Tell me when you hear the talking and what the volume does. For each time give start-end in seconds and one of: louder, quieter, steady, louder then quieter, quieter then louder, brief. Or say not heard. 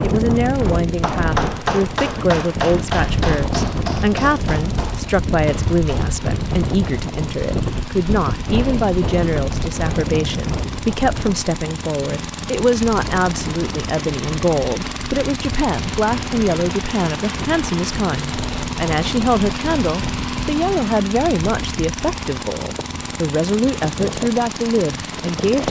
0.0-25.6 steady.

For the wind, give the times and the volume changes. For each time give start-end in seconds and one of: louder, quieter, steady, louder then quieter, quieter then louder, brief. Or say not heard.
0.0-25.6 quieter.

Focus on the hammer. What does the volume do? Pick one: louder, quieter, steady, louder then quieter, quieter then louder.
quieter.